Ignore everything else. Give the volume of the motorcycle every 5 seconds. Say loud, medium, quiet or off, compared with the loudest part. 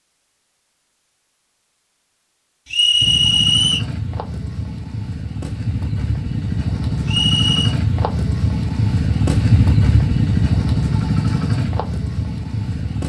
medium, loud, loud.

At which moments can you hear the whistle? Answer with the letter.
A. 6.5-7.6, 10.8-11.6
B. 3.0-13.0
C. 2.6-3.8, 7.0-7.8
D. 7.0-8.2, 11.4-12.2
C.